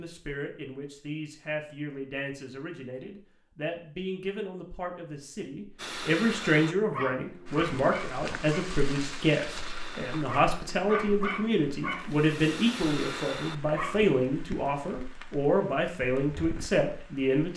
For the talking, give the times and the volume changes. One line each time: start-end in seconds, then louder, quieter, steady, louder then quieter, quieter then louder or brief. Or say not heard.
0.0-17.5 louder.